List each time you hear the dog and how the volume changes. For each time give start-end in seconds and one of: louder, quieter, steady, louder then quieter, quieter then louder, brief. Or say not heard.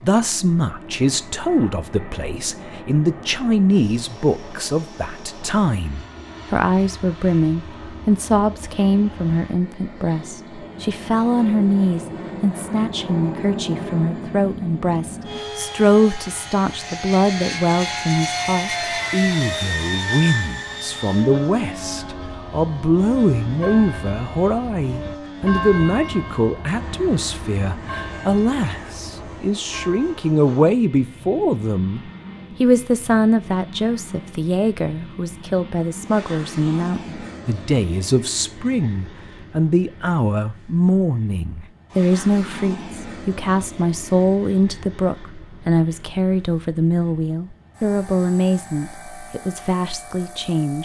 not heard.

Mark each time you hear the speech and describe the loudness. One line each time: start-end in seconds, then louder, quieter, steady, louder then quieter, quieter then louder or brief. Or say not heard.
0.0-32.0 steady
32.6-50.8 steady.